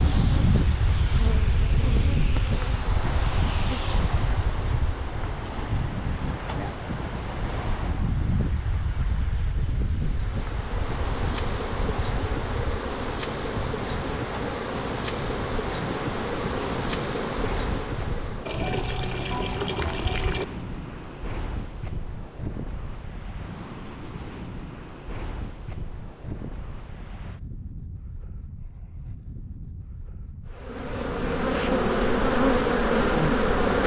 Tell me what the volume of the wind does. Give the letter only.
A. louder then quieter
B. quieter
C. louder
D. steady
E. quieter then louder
B.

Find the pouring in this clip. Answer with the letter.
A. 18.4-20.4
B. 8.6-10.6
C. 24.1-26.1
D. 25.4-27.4
A.